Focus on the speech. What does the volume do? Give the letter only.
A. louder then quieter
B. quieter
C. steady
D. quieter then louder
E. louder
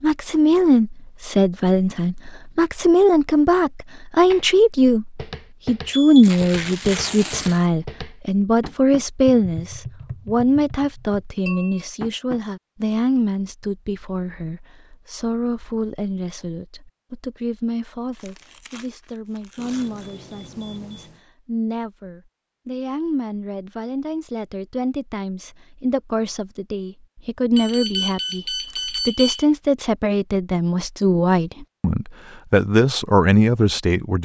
D.